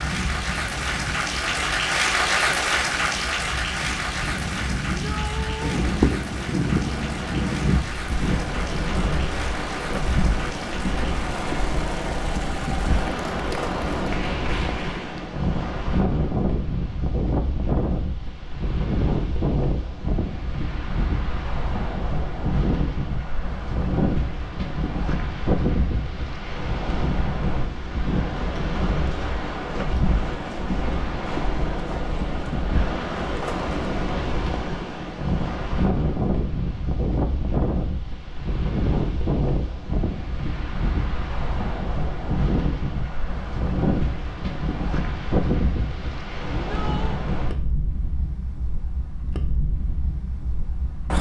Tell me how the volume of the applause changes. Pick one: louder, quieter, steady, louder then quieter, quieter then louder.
quieter.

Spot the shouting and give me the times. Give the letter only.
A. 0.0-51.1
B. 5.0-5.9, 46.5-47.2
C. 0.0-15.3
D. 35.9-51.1
B.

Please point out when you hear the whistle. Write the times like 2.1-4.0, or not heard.
not heard.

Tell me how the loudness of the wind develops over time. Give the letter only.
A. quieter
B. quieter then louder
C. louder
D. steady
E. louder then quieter
D.